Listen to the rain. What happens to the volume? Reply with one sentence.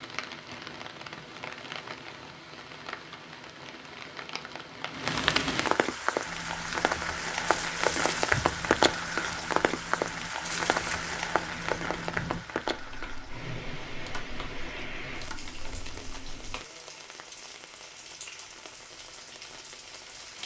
The volume of the rain goes up, then down.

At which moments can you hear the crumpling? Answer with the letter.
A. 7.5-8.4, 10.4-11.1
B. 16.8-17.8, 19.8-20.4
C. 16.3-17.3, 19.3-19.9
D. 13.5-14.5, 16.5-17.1
A.